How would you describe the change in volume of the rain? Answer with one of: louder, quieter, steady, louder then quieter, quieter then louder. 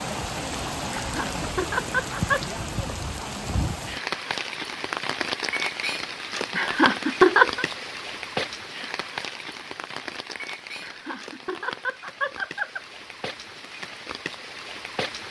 quieter.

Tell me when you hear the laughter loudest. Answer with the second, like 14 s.
7 s.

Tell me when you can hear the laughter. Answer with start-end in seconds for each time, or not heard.
0.9-2.4, 6.5-7.7, 10.8-12.8.